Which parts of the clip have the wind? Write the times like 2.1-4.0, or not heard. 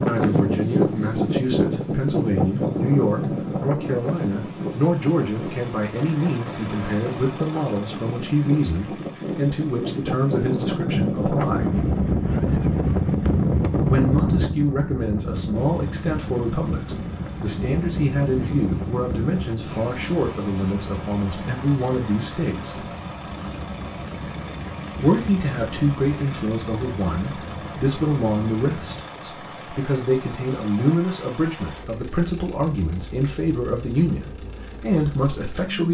0.0-29.1.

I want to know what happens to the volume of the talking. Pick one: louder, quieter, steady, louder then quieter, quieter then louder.
steady.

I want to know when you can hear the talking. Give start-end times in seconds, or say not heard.
0.1-11.7, 13.8-22.9, 25.0-35.8.